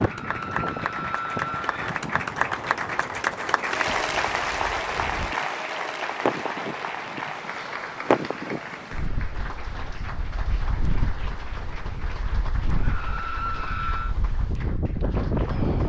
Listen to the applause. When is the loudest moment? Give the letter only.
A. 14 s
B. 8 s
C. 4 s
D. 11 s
C.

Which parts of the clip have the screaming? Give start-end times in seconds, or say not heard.
0.0-1.9, 12.8-14.2.